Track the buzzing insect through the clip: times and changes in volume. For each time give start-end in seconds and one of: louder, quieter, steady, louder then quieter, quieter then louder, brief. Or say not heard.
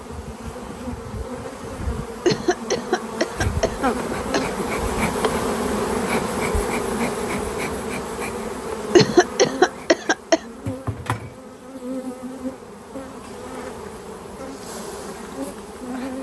0.0-16.1 louder then quieter.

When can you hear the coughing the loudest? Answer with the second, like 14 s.
9 s.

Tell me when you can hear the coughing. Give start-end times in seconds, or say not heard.
2.2-4.7, 8.9-10.4.